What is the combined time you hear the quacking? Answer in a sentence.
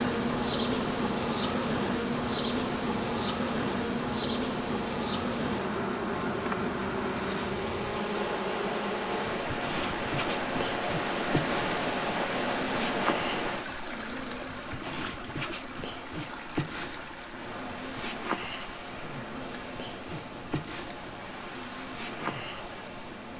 The quacking can't be heard in this clip.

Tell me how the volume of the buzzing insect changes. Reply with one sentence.
The loudness of the buzzing insect goes down.